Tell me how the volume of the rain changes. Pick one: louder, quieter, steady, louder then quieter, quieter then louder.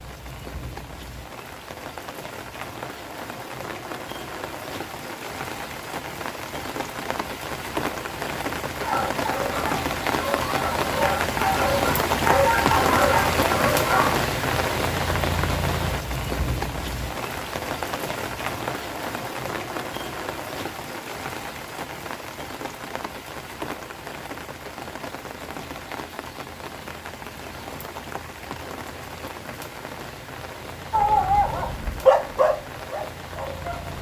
louder then quieter.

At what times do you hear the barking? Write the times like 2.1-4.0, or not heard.
8.7-14.2, 30.9-33.9.